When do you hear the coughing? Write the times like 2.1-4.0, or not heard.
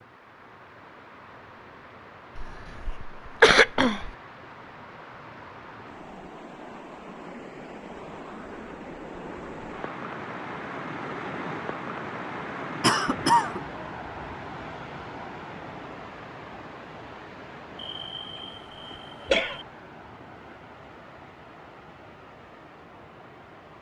2.4-4.1, 12.8-13.6, 17.8-19.6.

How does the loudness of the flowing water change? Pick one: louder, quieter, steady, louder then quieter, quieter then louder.
louder then quieter.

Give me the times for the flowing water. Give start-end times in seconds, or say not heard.
0.0-23.7.